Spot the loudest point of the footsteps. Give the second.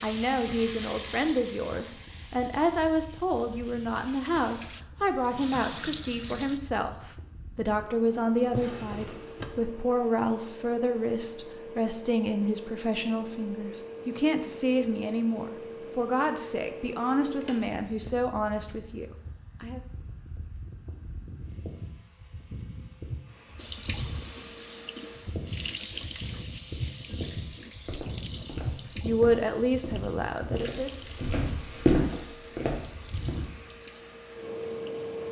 32 s.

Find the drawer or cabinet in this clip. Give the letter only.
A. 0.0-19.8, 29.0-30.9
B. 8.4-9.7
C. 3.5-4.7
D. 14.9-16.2
B.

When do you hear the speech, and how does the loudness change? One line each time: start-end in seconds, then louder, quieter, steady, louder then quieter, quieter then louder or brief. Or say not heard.
0.0-19.8 steady
29.0-30.9 brief.